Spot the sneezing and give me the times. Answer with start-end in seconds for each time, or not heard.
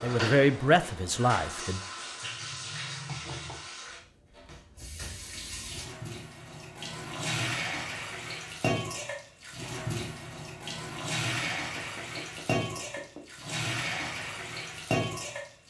not heard.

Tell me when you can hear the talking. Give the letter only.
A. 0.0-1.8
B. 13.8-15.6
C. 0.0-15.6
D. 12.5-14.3
A.